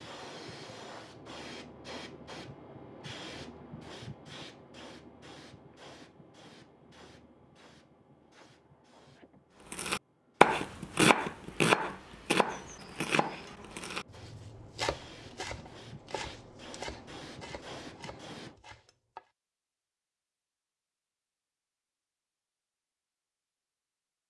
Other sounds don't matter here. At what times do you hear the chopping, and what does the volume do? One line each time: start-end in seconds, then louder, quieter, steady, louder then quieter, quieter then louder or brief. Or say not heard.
9.7-19.2 quieter.